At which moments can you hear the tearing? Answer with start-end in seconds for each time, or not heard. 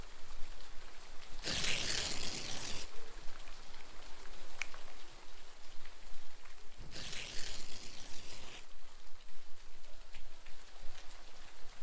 1.4-2.9, 6.9-8.7.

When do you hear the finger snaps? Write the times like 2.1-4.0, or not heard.
3.5-4.9.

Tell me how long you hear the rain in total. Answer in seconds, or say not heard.
12 s.